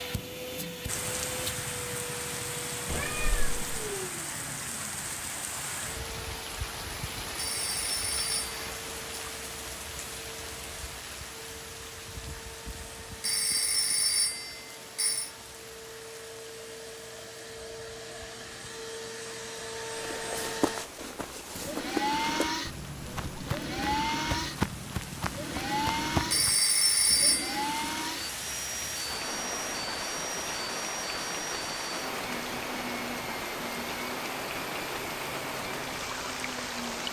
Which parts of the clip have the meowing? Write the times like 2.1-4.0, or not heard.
2.9-4.0.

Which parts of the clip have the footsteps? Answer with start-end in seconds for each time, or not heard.
19.9-26.6.